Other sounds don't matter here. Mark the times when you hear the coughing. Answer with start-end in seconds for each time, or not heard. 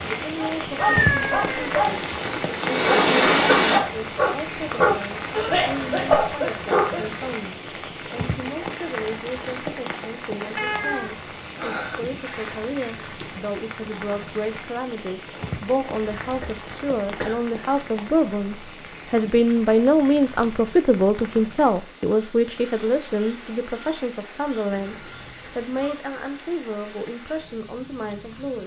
5.3-7.3, 15.9-17.4.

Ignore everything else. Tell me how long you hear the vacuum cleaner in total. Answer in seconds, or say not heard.
2 s.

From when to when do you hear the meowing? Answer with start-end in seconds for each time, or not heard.
0.8-1.8, 10.6-12.6, 24.7-25.9.